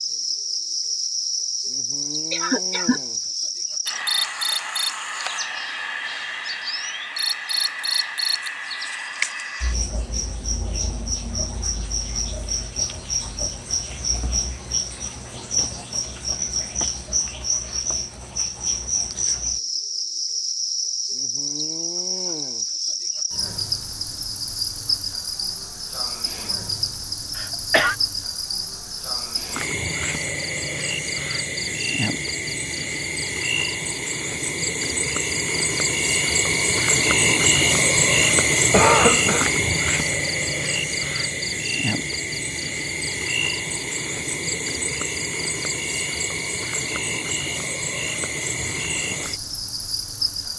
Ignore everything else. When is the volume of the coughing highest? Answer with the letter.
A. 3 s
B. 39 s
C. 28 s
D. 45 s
B.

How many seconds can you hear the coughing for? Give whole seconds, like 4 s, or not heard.
2 s.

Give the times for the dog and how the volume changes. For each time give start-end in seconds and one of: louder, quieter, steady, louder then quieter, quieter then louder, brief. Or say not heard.
not heard.